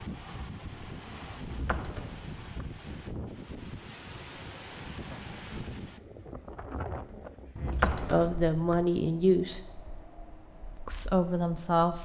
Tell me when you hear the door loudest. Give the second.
8 s.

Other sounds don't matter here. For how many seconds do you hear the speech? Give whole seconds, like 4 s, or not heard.
3 s.